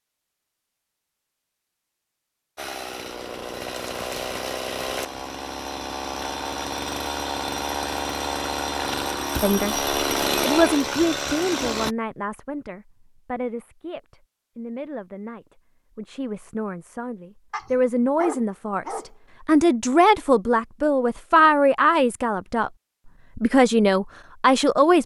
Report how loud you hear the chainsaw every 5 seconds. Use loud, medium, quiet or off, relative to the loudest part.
medium, loud, loud, off, off.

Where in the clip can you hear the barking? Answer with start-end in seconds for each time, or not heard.
17.5-19.1.